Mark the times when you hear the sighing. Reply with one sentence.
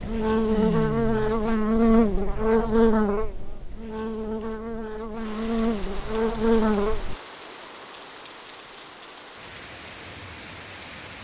The sighing can be heard from 0.5 to 1.4 s.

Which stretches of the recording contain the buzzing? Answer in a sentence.
The buzzing can be heard from 0.0 to 7.2 s.